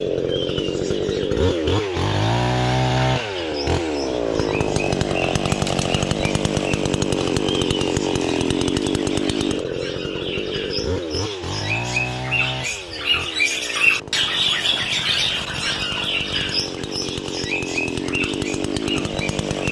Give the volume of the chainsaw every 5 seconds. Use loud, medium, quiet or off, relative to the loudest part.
loud, loud, medium, medium.